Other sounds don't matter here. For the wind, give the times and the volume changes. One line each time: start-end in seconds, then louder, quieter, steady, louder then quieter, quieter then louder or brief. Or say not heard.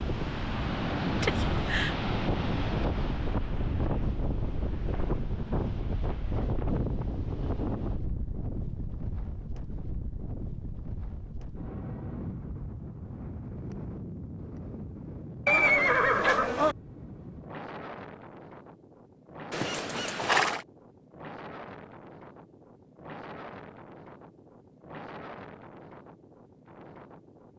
0.0-27.5 quieter.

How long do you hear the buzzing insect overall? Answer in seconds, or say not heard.
not heard.